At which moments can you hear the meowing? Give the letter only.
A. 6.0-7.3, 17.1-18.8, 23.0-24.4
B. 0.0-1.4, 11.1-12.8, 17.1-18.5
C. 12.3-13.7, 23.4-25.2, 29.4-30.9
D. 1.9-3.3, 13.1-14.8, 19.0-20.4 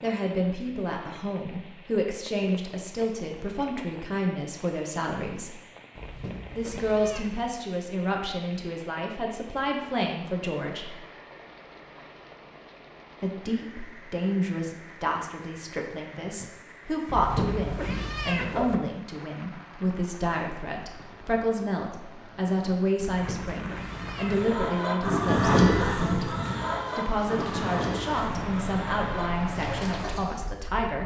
A.